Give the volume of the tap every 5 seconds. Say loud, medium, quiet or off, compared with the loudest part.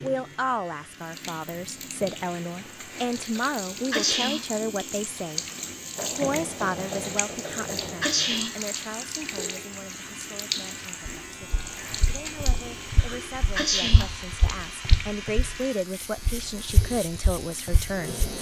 medium, loud, loud, medium.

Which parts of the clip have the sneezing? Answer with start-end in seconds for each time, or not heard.
3.4-4.6, 7.5-8.8, 12.9-14.3.